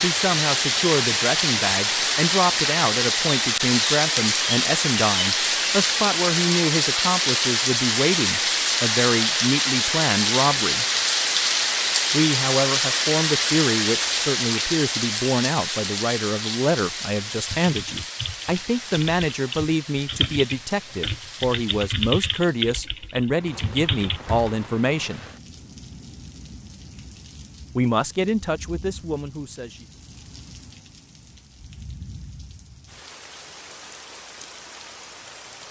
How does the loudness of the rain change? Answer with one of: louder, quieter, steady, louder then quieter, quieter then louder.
quieter.